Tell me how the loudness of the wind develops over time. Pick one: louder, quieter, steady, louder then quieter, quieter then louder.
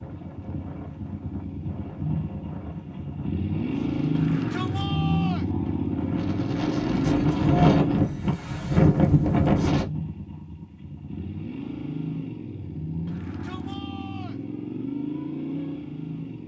louder.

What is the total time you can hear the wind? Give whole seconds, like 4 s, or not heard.
10 s.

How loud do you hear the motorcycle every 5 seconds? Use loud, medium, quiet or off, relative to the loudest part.
loud, loud, medium, medium.